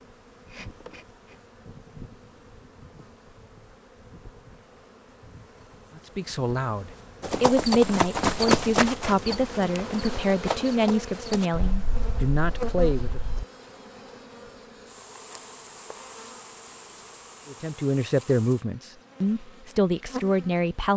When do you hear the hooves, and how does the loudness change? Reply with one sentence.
The hooves can be heard from 7.2 to 13.4 s, getting quieter.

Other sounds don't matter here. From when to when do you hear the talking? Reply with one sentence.
The talking can be heard from 6.0 to 13.2 s and from 17.4 to 20.9 s.